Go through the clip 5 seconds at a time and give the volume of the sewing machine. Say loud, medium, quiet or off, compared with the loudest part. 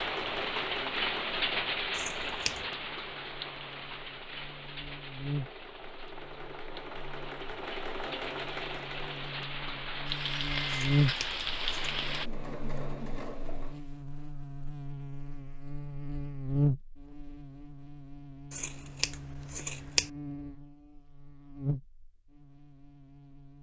loud, loud, loud, off, off.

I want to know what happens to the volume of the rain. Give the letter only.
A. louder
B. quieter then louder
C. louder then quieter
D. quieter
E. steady
B.